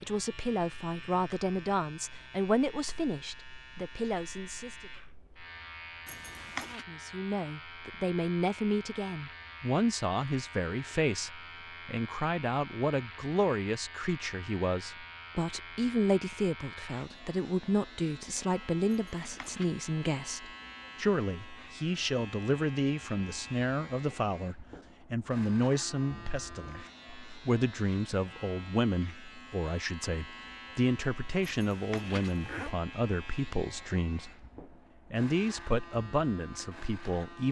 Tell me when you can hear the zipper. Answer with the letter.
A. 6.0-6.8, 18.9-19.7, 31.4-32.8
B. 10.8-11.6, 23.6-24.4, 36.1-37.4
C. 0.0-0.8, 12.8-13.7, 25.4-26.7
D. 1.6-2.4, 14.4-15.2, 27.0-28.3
A.